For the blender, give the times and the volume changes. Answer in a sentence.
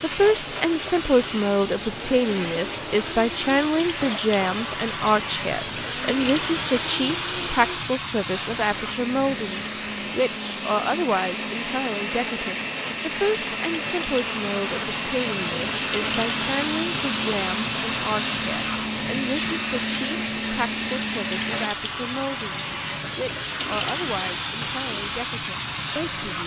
You can hear the blender from 0.2 to 21.7 s, getting louder.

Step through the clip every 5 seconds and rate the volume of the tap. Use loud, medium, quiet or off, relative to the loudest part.
loud, loud, medium, loud, loud, loud.